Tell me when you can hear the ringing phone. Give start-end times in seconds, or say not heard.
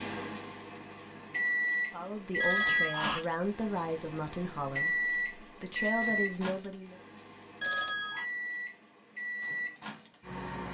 2.4-3.2, 7.6-8.2.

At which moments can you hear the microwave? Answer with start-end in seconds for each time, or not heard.
0.0-10.7.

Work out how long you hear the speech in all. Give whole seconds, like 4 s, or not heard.
5 s.